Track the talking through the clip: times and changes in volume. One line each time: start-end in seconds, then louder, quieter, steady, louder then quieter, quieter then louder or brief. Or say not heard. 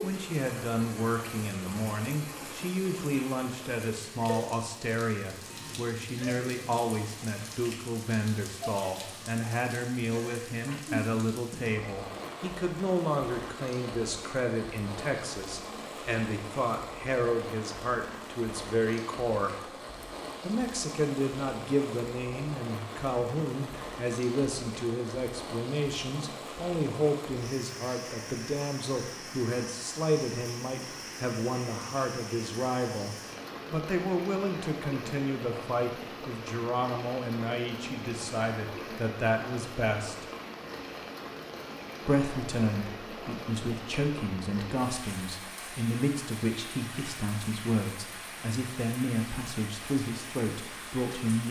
0.0-19.7 steady
20.4-40.2 steady
42.0-51.4 steady.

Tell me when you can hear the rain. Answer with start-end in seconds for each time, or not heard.
0.0-51.4.